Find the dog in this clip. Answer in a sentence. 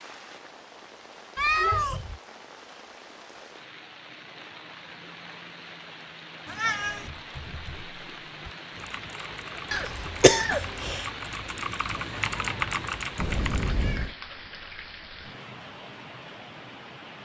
You can't hear the dog here.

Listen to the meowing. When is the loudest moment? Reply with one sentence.
The volume of the meowing peaks at 2 seconds.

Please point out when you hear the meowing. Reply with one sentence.
You can hear the meowing from 1.4 to 2.2 s, from 6.5 to 7.1 s and from 13.2 to 14.2 s.